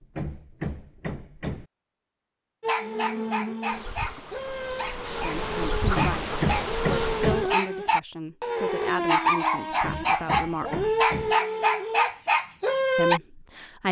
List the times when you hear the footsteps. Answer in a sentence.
You can't hear the footsteps here.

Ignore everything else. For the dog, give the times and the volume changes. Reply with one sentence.
You can hear the dog from 2.6 to 13.2 s, getting louder.